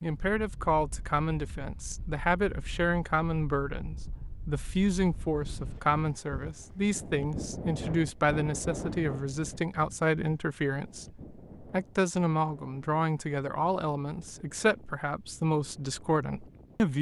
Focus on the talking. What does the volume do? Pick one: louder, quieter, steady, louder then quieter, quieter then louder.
steady.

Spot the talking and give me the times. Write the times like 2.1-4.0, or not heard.
0.0-16.9.